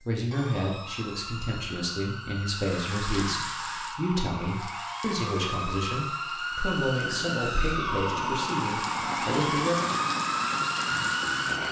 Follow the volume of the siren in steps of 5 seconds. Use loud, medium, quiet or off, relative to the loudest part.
medium, loud, loud.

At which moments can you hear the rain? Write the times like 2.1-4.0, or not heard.
2.5-11.6.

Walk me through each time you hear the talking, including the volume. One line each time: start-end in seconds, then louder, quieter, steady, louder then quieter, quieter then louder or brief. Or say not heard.
0.1-9.9 steady.